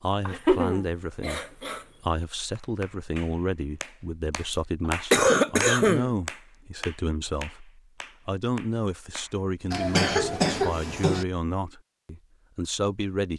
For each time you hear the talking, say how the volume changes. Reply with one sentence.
You can hear the talking from 0.0 to 13.3 s, at a steady volume.